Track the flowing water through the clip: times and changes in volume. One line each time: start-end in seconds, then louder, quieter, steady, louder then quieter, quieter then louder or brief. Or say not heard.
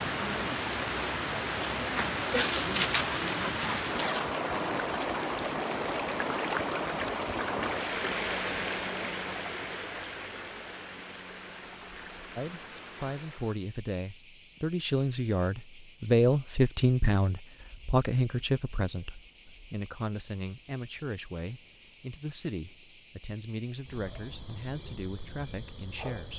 0.0-13.6 quieter.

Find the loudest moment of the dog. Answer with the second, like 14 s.
3 s.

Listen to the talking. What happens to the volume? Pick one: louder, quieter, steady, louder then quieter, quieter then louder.
louder then quieter.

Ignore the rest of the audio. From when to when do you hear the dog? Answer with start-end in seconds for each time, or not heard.
2.1-4.2.